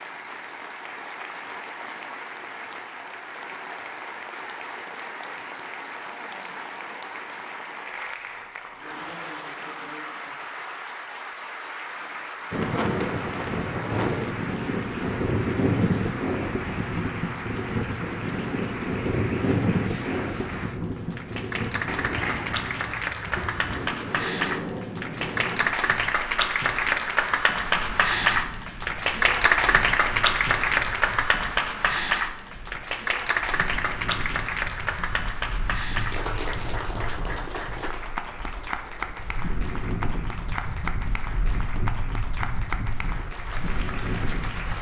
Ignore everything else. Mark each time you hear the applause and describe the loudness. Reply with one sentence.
The applause can be heard from 0.0 to 44.7 s, getting louder then quieter.